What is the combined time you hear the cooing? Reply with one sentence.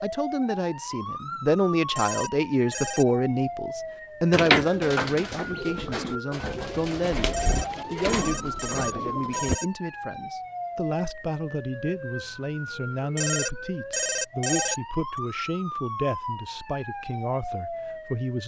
The cooing can be heard for 5 seconds in total.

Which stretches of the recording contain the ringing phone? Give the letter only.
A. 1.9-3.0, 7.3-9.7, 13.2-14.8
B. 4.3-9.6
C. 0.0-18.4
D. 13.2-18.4
A.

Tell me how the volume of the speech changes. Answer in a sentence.
The volume of the speech goes down.